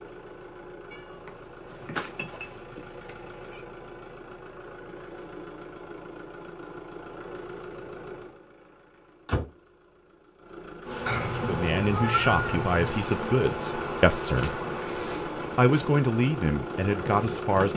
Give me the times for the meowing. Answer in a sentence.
The meowing can be heard from 0.9 to 3.6 s and from 11.1 to 12.8 s.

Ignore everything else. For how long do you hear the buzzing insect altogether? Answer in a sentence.
The buzzing insect can be heard for 7 seconds in total.